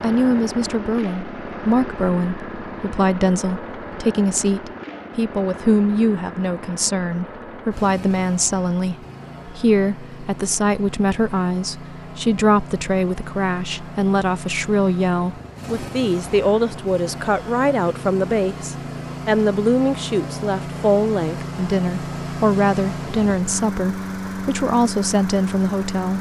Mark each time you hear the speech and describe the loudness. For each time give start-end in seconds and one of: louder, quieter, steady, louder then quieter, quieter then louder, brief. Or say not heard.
0.0-26.1 steady.